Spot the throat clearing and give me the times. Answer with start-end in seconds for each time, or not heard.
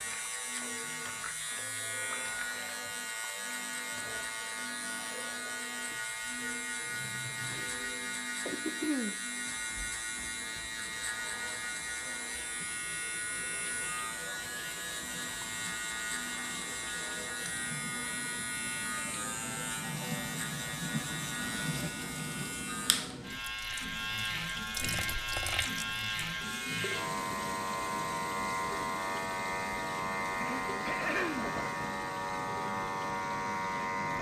8.5-9.2, 30.4-31.6.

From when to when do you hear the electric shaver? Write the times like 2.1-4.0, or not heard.
0.0-34.1.